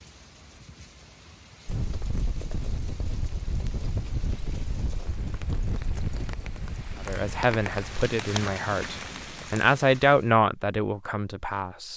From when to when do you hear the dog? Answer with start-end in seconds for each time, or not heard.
not heard.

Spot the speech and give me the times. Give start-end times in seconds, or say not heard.
7.0-11.9.